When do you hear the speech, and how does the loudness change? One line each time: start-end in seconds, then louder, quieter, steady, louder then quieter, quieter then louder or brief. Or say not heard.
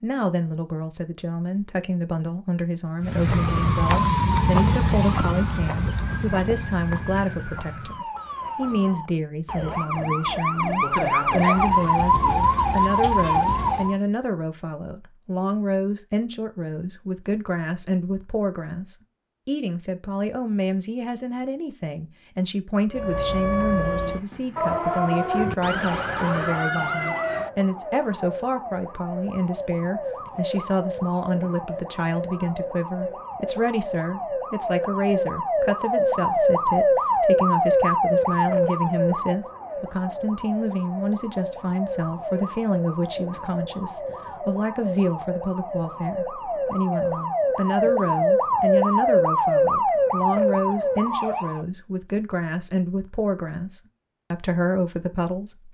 0.0-55.6 steady.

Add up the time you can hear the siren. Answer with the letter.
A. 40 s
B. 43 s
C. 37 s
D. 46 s
A.